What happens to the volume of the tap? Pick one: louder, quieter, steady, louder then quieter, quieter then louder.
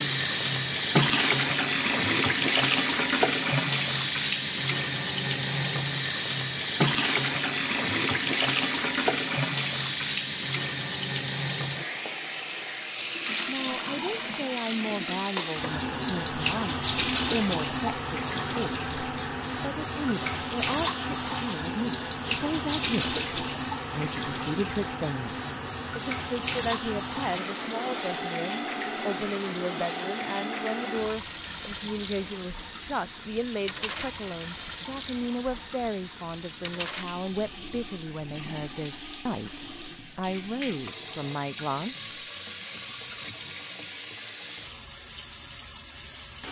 quieter.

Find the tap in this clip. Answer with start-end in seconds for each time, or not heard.
0.0-46.4.